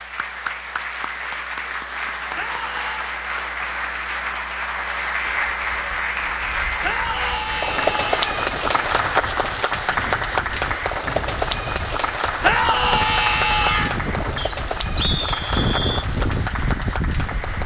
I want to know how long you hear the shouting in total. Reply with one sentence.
The shouting can be heard for 4 seconds in total.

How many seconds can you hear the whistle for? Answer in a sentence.
You can hear the whistle for 2 seconds altogether.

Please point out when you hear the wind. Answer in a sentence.
The wind can be heard from 5.5 to 17.6 s.